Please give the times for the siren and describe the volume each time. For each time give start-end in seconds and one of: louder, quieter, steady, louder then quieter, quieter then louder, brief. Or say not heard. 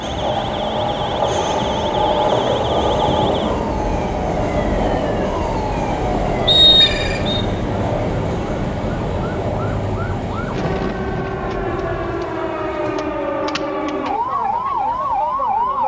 0.0-15.8 louder.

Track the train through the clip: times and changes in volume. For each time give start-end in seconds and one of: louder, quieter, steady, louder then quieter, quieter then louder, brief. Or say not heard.
0.0-15.8 quieter.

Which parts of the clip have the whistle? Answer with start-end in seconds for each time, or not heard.
6.5-7.5.